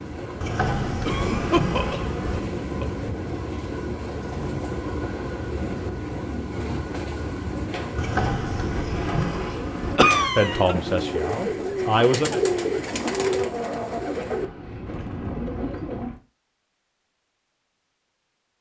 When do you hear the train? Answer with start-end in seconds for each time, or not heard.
0.0-16.1.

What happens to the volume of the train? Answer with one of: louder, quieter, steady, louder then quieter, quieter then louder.
quieter.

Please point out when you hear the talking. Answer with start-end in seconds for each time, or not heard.
10.3-12.4.